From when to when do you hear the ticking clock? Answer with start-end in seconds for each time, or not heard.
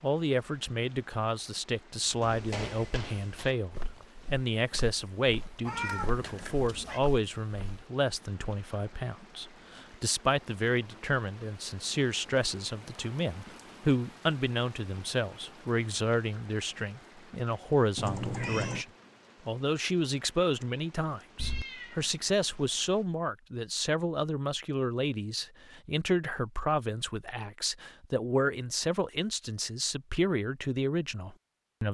not heard.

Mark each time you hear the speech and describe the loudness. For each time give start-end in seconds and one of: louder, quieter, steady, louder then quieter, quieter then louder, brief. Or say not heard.
0.0-18.9 steady
19.4-31.9 steady.